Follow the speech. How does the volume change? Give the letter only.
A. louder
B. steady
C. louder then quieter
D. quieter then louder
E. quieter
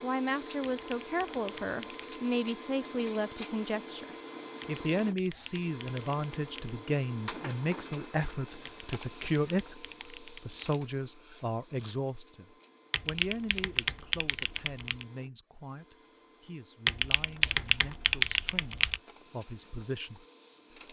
E.